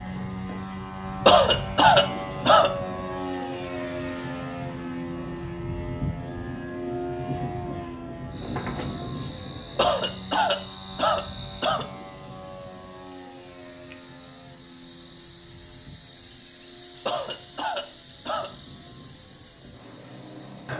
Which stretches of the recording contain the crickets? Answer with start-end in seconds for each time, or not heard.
8.3-20.7.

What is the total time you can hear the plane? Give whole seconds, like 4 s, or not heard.
21 s.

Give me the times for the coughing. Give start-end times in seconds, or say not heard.
1.2-2.7, 9.8-11.8, 17.1-18.5.